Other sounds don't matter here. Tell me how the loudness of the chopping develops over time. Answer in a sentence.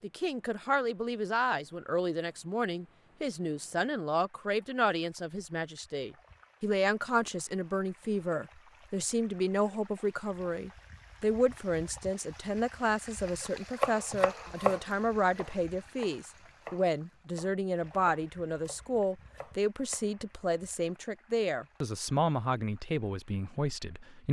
The loudness of the chopping goes down.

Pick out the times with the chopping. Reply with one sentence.
The chopping can be heard from 13.3 to 20.2 s.